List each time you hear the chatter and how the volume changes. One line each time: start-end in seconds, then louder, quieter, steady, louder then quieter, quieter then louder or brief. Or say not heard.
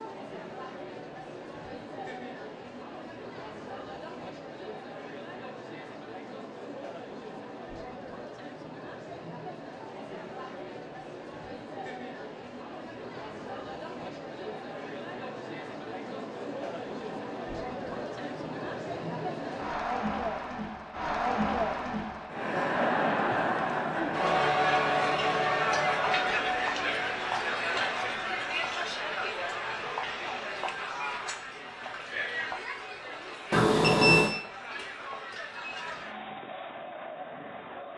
0.0-37.9 louder then quieter.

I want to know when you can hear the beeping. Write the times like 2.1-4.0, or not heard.
33.5-34.4.